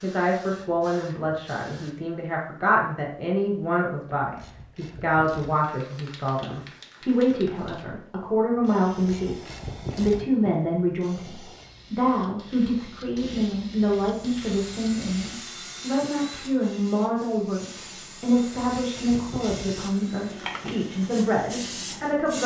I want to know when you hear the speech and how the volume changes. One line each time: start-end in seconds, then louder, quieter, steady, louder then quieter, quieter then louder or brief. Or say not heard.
0.0-22.4 steady.